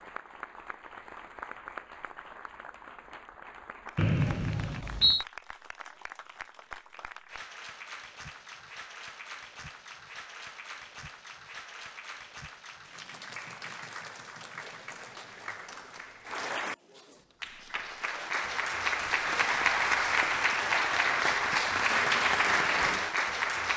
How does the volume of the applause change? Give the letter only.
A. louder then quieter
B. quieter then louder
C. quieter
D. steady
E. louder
E.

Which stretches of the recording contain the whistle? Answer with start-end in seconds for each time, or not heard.
4.0-5.2.